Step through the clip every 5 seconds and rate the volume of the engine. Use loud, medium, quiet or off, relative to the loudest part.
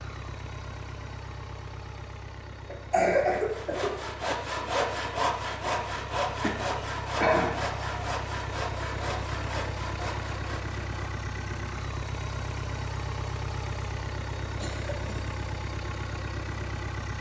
medium, loud, loud, loud.